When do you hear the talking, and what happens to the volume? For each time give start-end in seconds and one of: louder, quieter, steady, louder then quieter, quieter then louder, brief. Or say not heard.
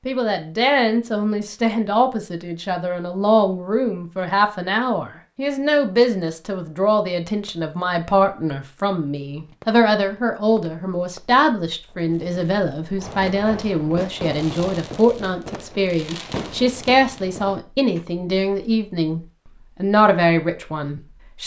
0.1-21.4 steady.